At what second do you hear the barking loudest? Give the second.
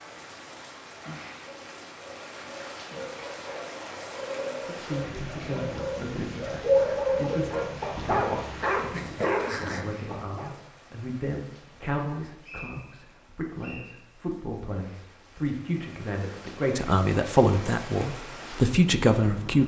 7 s.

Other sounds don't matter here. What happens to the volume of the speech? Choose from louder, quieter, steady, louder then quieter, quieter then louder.
louder.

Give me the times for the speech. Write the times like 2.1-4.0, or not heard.
4.5-19.6.